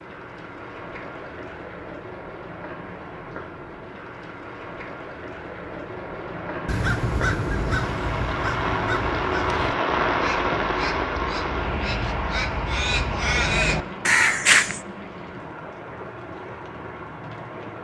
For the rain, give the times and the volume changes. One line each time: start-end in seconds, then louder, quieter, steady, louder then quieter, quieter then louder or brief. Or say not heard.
0.0-17.7 louder then quieter.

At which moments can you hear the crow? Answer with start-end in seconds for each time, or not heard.
6.7-14.8.